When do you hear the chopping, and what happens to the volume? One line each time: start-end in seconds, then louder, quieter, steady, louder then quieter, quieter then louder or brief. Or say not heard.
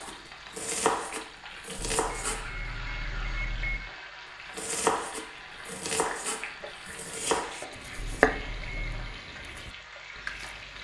0.0-2.5 brief
4.5-10.7 louder then quieter.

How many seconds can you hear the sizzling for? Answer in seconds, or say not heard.
11 s.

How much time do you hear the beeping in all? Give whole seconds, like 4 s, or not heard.
3 s.